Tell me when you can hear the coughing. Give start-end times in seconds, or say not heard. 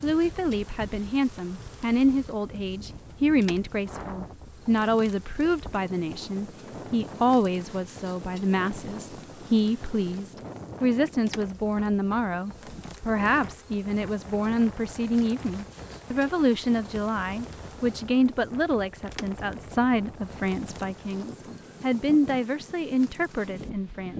not heard.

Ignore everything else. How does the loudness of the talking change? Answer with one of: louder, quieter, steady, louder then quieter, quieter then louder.
steady.